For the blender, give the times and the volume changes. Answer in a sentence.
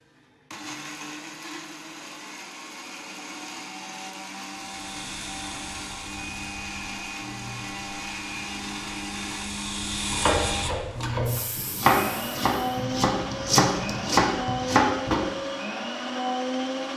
The blender can be heard from 0.0 to 16.9 s, getting louder.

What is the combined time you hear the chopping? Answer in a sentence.
You can hear the chopping for 5 seconds altogether.